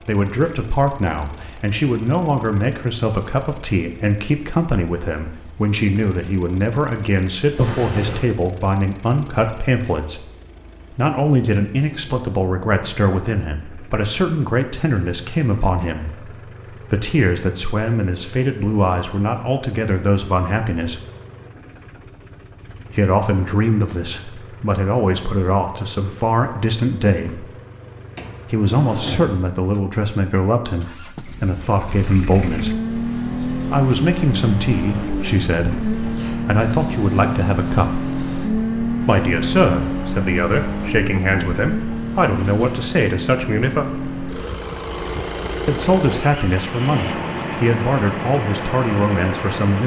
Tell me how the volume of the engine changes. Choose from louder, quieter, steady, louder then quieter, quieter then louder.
louder.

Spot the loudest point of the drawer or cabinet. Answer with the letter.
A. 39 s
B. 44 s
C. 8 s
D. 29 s
C.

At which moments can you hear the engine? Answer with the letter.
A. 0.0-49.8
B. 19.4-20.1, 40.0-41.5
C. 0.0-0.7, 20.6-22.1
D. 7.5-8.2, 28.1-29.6
A.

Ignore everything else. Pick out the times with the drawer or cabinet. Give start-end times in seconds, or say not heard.
7.5-8.2, 28.1-29.6.